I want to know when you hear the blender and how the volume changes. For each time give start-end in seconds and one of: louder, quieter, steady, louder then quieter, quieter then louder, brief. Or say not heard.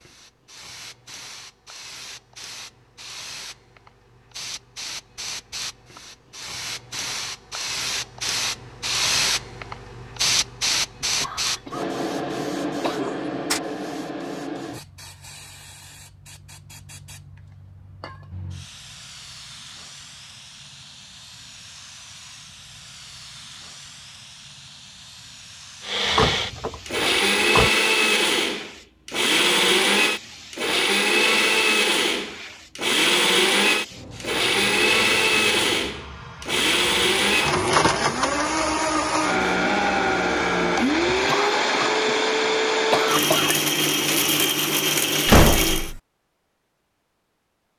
25.8-46.0 steady.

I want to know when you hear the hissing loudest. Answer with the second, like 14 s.
11 s.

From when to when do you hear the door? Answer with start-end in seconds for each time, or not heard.
13.0-13.6, 26.1-27.7, 45.2-46.0.